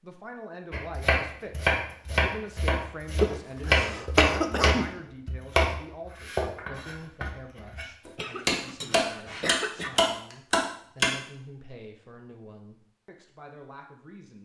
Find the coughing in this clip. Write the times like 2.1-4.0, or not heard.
3.2-4.8, 8.1-9.9.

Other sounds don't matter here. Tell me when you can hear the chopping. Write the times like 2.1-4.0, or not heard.
0.7-7.8, 8.4-11.1.